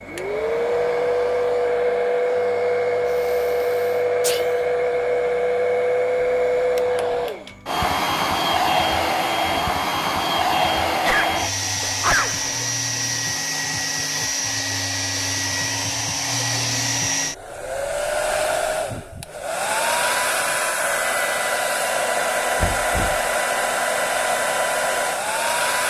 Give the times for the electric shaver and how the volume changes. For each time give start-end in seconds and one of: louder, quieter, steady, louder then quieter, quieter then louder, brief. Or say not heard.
not heard.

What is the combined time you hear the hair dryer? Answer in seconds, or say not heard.
26 s.